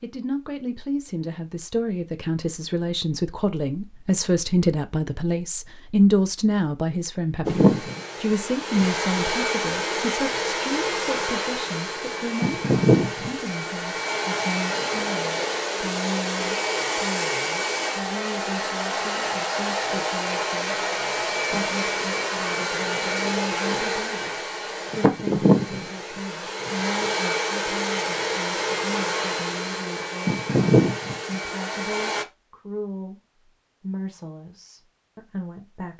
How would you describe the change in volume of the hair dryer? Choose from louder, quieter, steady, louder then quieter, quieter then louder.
steady.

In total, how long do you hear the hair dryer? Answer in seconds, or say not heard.
25 s.